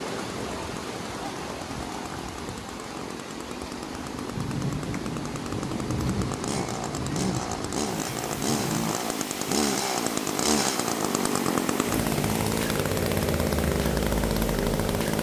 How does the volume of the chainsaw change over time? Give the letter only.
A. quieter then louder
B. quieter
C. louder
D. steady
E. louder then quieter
C.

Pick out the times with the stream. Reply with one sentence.
The stream can be heard from 0.0 to 15.1 s.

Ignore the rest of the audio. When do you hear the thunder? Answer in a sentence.
The thunder can be heard from 4.3 to 8.8 s.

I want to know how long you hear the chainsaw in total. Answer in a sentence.
You can hear the chainsaw for 15 seconds altogether.